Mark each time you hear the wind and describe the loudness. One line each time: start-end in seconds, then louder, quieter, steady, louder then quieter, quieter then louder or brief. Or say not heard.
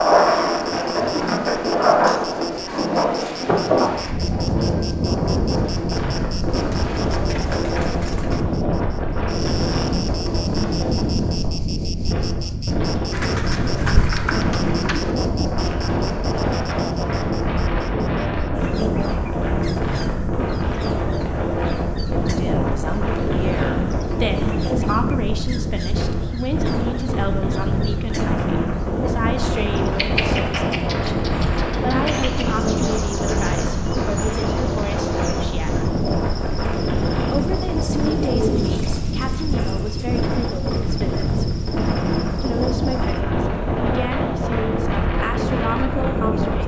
0.0-46.6 steady.